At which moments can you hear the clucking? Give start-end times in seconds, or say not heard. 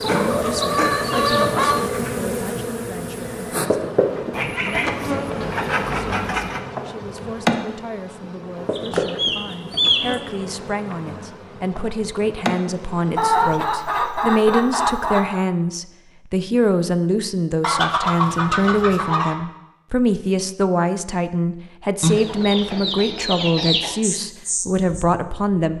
0.0-1.9, 4.3-6.6, 8.8-10.2, 13.2-15.4, 17.6-19.4, 22.0-23.9.